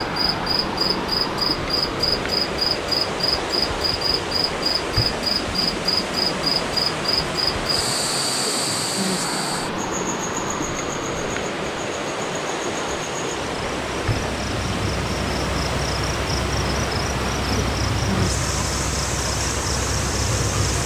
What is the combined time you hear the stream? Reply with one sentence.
You can hear the stream for 21 seconds altogether.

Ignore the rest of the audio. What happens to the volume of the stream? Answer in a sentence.
The loudness of the stream stays about the same.